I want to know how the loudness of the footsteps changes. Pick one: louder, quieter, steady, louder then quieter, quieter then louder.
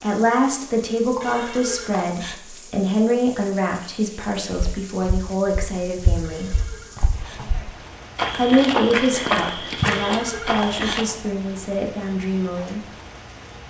louder.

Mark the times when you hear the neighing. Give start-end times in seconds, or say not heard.
1.2-2.4, 6.2-7.4, 9.8-10.8.